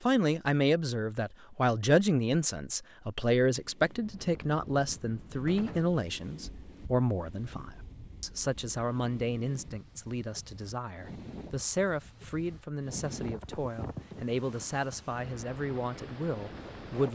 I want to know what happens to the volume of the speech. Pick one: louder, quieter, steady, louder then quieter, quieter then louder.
quieter.